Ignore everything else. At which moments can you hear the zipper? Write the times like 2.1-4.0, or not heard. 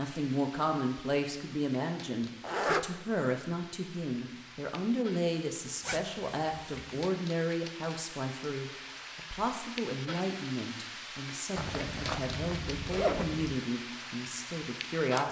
2.4-2.9, 5.8-6.8, 11.6-13.6.